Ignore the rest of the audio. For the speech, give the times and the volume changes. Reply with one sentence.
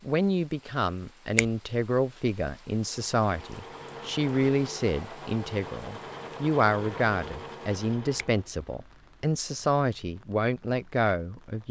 The speech can be heard from 0.0 to 11.6 s, at a steady volume.